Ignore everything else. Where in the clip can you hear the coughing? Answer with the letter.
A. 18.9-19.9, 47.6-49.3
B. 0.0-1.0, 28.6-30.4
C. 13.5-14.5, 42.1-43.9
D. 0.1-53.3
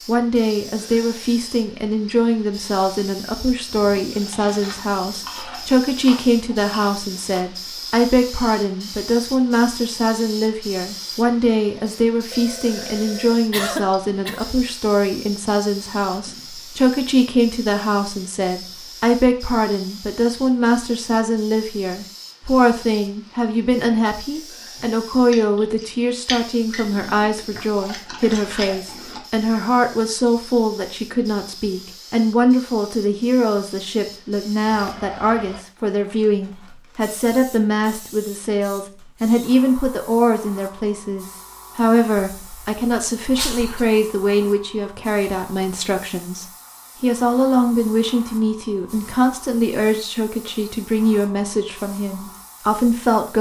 C.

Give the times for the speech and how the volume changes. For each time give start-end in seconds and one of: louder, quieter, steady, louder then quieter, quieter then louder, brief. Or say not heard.
0.1-53.3 steady.